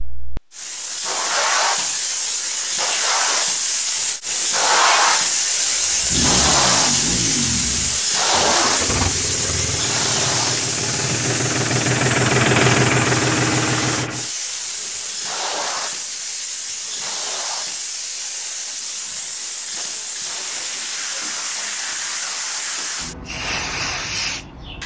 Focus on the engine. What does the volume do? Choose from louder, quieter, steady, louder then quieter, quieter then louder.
louder.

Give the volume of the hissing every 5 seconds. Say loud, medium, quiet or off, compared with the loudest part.
loud, loud, medium, medium, medium.